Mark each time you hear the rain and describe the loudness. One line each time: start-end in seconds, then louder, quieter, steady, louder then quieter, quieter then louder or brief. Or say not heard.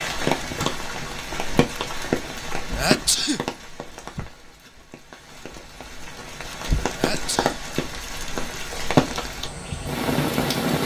0.0-10.8 quieter then louder.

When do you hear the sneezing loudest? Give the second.
3 s.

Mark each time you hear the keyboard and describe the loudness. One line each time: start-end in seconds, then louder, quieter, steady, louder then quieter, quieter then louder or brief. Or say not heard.
not heard.